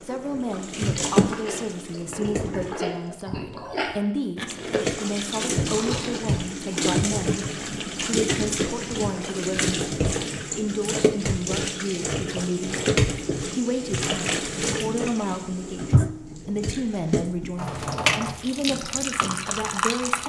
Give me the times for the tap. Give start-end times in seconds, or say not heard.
0.0-3.1, 4.5-20.2.